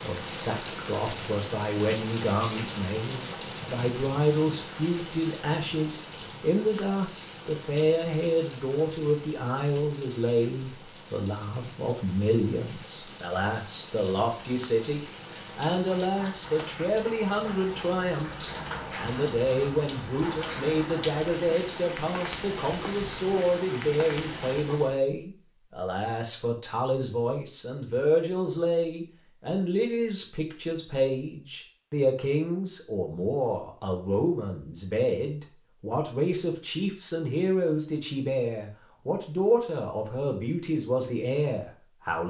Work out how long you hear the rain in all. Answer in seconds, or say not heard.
25 s.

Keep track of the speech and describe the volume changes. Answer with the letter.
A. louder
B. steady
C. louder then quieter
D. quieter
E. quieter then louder
B.